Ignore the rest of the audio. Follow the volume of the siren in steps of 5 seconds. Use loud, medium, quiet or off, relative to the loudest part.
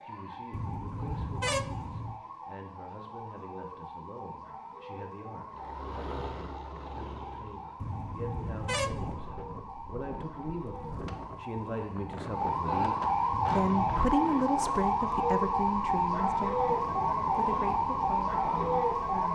quiet, quiet, loud, loud.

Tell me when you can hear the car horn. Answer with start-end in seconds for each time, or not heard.
0.5-2.2, 7.8-9.2, 13.3-14.2.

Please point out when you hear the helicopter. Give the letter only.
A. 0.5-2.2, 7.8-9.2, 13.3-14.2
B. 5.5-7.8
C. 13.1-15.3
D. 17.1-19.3
B.